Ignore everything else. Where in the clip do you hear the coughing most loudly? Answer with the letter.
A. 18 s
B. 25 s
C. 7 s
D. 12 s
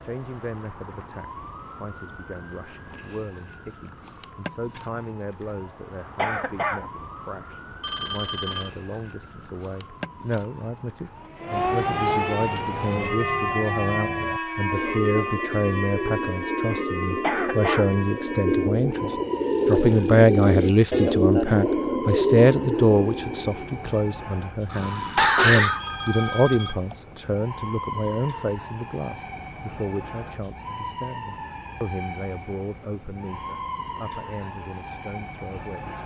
B.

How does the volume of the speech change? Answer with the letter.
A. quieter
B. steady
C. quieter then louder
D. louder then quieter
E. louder
D.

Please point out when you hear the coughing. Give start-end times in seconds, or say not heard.
6.2-6.8, 17.2-17.9, 24.7-25.8.